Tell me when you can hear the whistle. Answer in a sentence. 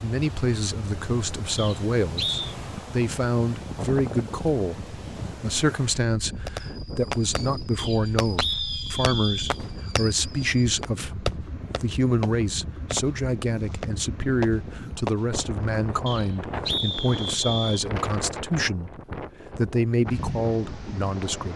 The whistle can be heard from 1.6 to 2.5 s, from 7.8 to 9.6 s and from 16.1 to 17.9 s.